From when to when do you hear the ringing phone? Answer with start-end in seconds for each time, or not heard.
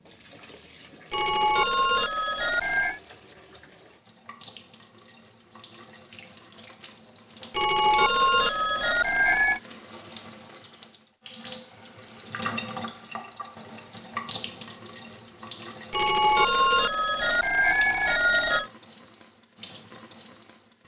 1.1-3.0, 7.5-9.6, 15.9-18.7.